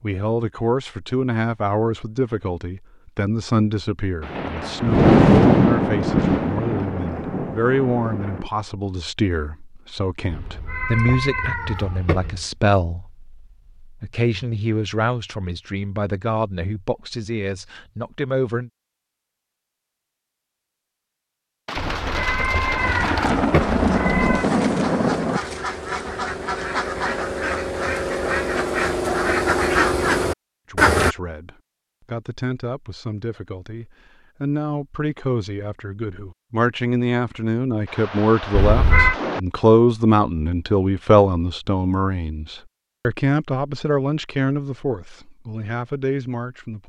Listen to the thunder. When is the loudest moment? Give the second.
5 s.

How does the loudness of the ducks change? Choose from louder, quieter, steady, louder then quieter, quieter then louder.
louder.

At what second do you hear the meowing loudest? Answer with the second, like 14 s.
39 s.